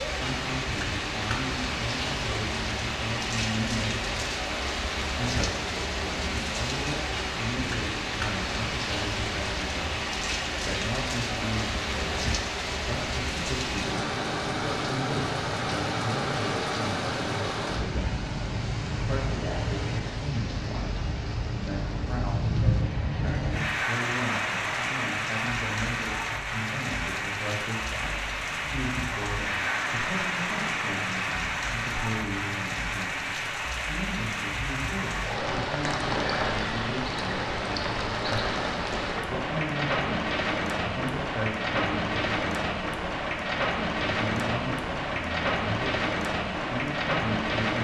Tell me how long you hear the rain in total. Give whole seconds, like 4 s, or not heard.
48 s.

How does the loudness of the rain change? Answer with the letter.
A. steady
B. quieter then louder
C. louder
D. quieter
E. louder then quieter
A.